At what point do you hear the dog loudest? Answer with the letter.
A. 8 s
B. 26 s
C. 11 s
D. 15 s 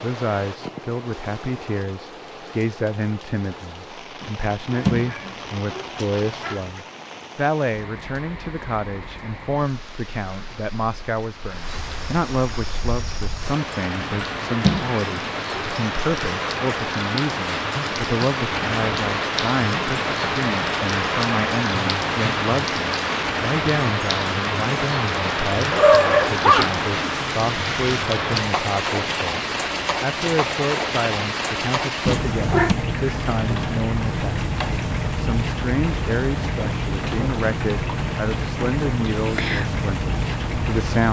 B.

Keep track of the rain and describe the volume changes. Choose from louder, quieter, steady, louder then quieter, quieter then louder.
louder.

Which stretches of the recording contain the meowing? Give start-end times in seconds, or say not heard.
4.2-6.8, 14.0-15.6, 32.0-32.8.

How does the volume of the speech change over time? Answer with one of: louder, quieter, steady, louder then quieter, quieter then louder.
steady.